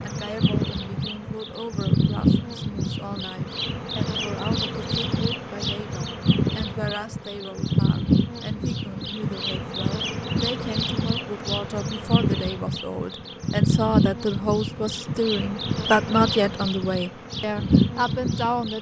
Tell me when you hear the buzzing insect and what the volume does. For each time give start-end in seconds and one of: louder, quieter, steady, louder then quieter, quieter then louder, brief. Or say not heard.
0.0-18.7 steady.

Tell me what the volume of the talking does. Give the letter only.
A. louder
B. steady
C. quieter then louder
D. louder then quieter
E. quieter
A.